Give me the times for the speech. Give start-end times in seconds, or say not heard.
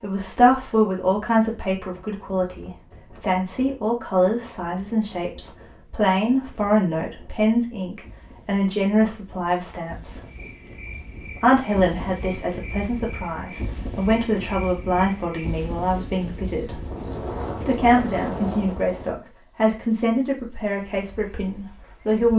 0.0-10.2, 11.3-16.8, 17.6-22.3.